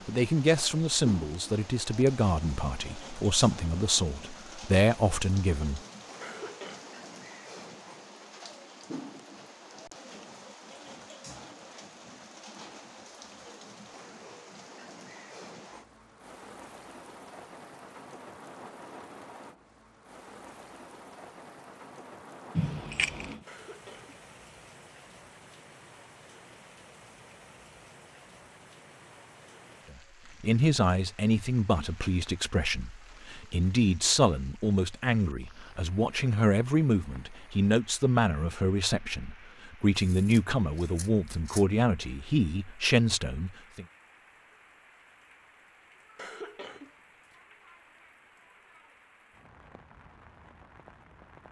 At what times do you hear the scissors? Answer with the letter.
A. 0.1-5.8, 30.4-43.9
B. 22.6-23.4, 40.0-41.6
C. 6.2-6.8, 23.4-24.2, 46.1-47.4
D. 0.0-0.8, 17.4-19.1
B.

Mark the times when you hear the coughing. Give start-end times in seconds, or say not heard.
6.2-6.8, 23.4-24.2, 46.1-47.4.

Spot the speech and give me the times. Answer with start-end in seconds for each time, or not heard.
0.1-5.8, 30.4-43.9.